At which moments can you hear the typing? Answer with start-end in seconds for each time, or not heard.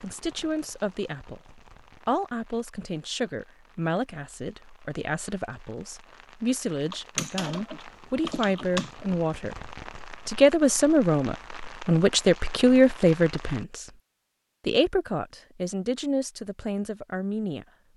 6.9-8.9.